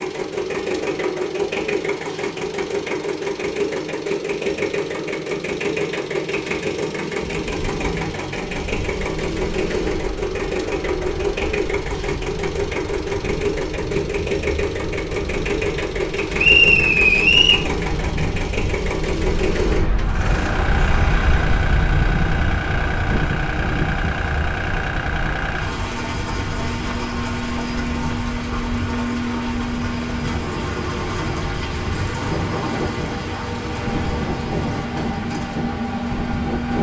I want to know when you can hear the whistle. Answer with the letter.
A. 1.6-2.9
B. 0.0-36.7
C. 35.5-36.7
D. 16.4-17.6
D.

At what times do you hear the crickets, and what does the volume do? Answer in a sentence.
The crickets can't be heard in this clip.